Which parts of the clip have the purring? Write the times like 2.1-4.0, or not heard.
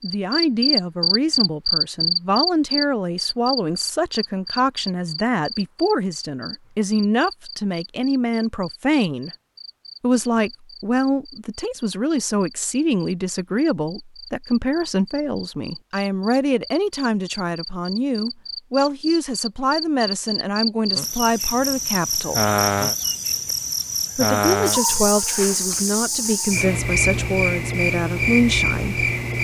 not heard.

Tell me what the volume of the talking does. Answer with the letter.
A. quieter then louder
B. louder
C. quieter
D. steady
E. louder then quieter
D.